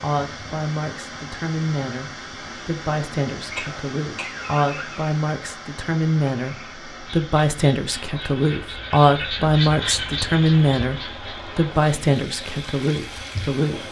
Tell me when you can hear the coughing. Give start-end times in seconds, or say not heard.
3.5-5.2.